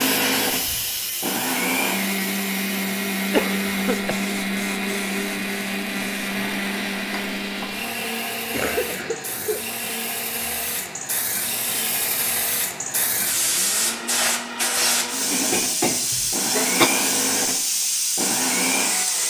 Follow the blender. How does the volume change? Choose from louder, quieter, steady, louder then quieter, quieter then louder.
quieter then louder.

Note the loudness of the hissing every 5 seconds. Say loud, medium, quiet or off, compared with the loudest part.
medium, quiet, loud, loud.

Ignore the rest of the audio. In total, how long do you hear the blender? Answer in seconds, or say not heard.
19 s.